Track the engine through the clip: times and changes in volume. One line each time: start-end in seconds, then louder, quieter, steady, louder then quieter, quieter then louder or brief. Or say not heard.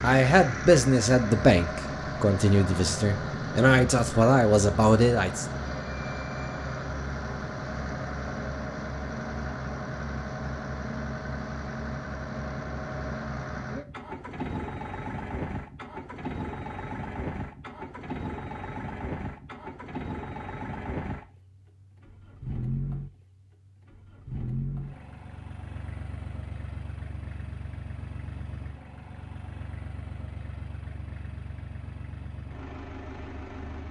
0.0-33.8 quieter.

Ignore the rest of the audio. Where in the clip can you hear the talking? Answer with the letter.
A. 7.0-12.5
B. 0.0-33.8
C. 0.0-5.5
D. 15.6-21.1
C.